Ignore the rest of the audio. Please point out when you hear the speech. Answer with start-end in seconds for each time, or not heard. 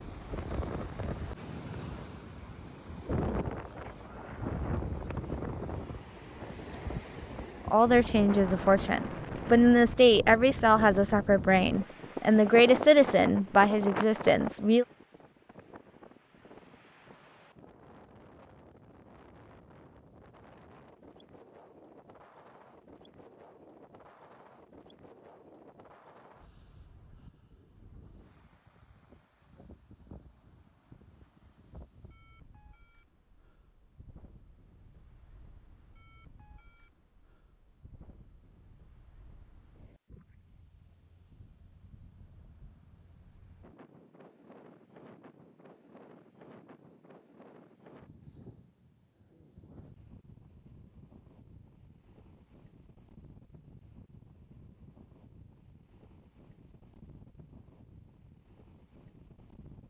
7.7-14.8.